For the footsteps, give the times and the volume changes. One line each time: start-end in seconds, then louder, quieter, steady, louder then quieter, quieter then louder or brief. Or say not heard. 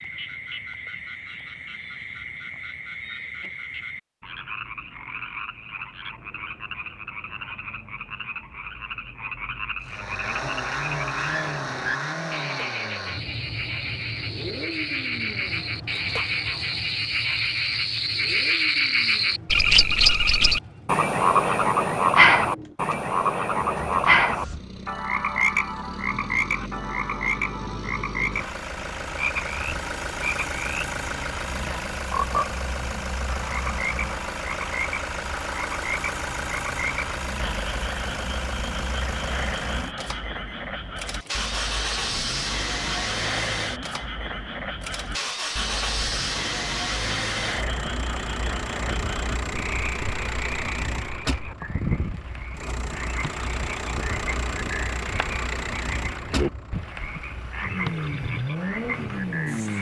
not heard.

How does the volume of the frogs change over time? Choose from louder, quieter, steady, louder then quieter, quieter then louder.
louder then quieter.